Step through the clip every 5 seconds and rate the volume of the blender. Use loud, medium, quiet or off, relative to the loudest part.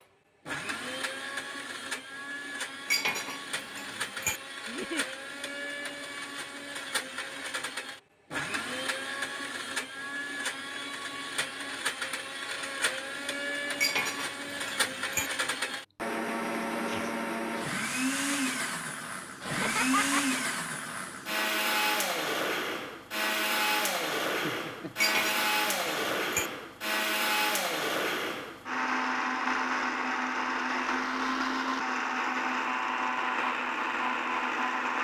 medium, medium, medium, loud, loud, loud, loud.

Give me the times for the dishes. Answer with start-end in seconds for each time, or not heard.
2.9-4.4, 13.8-15.3, 25.0-26.5.